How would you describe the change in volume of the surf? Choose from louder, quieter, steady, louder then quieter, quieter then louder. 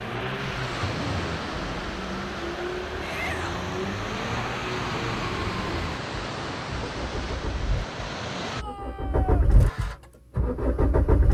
steady.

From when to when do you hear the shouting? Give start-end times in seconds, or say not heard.
3.0-3.6, 8.4-9.5.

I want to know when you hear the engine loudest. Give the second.
11 s.